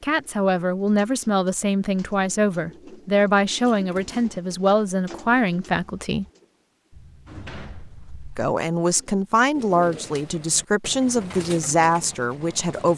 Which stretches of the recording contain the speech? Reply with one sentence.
You can hear the speech from 0.0 to 6.2 s and from 8.3 to 12.9 s.